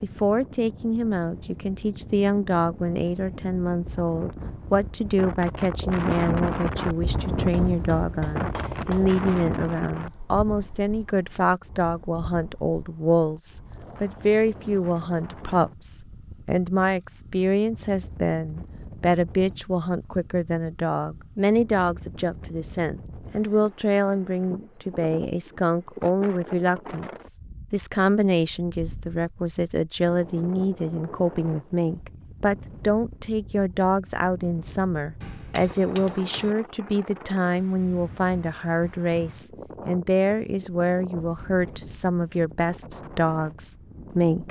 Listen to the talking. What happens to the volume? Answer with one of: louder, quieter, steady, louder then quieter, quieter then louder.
steady.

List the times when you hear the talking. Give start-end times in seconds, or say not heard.
0.0-44.4.